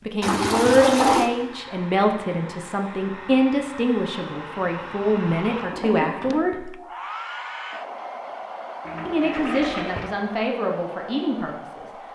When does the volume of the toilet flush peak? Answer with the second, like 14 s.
1 s.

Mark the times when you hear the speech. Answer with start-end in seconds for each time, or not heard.
0.1-6.8, 9.1-11.9.